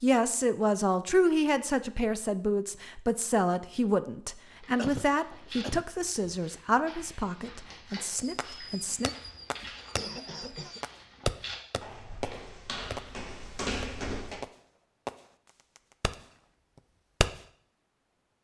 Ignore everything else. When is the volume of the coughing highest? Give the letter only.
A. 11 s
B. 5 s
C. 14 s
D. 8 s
B.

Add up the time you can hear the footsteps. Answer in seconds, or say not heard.
10 s.